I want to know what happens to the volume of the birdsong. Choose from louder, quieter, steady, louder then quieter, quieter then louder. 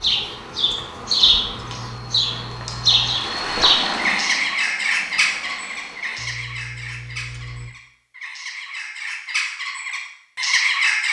quieter then louder.